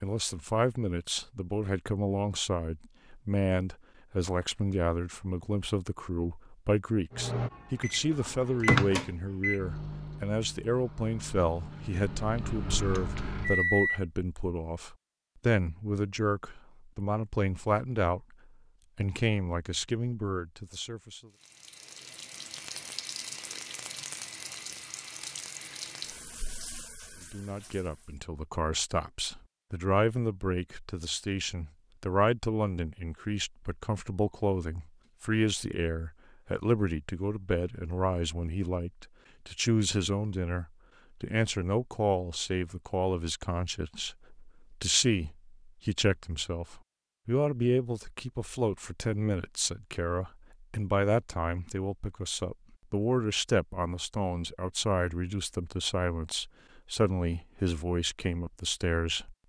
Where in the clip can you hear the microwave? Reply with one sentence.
The microwave can be heard from 7.1 to 14.0 s.